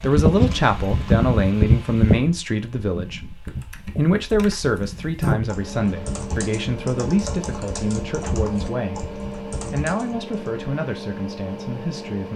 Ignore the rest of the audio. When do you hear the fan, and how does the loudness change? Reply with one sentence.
You can hear the fan from 0.0 to 12.3 s, getting quieter.